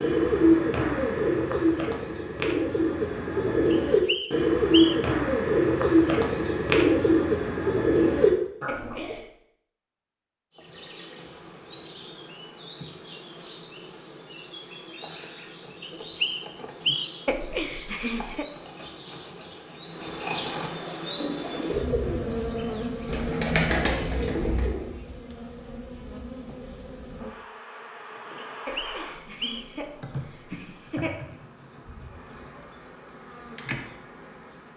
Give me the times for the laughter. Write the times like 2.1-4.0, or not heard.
8.7-9.2, 17.2-18.4, 28.6-31.4.